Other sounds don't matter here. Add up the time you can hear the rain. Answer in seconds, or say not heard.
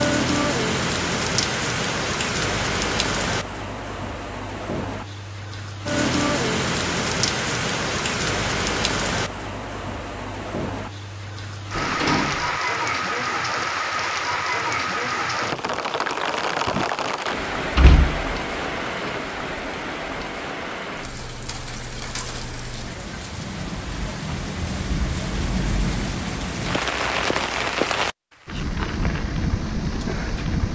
31 s.